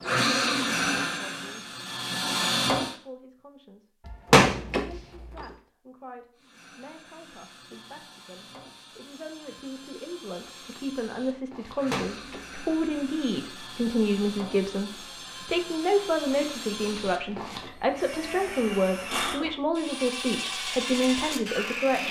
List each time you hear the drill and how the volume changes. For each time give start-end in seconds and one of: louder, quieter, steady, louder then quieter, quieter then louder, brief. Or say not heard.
0.0-3.0 brief
6.3-22.0 louder.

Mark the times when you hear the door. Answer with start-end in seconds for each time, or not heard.
4.0-5.4, 11.9-13.0.